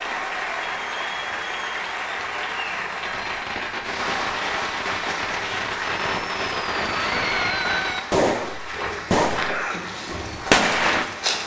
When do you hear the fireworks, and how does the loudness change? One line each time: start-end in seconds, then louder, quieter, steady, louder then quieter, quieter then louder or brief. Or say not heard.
3.0-11.1 louder.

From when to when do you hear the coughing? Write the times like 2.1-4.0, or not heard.
9.4-9.8.